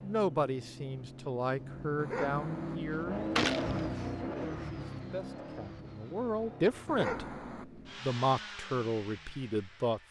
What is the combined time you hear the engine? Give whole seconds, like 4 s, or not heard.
10 s.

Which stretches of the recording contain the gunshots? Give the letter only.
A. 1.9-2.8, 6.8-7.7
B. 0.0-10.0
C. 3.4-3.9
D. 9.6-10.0
C.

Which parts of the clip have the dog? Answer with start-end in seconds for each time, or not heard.
1.9-2.8, 6.8-7.7.